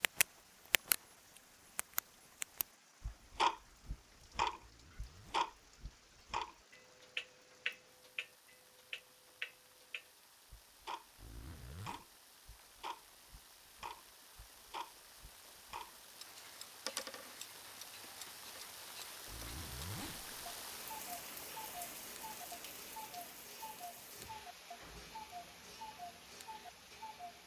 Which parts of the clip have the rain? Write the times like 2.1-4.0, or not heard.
0.0-27.4.